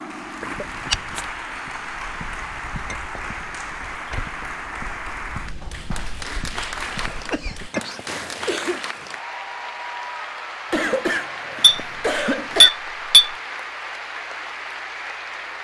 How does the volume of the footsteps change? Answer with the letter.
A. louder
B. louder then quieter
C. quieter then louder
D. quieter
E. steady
A.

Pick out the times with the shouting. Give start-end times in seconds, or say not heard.
not heard.